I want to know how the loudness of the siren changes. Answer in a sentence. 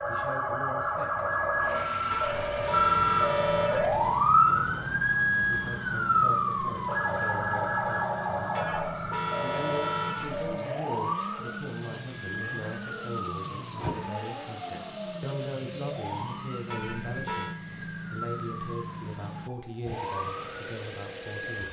The loudness of the siren goes down.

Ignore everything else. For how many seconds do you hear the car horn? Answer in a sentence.
You can hear the car horn for 5 seconds altogether.